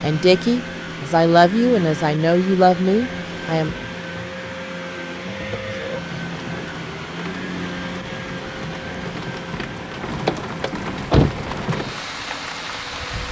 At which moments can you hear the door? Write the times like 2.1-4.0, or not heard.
10.2-11.4.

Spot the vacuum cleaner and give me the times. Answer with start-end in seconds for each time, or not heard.
0.0-13.2.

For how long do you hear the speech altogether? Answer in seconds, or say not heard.
4 s.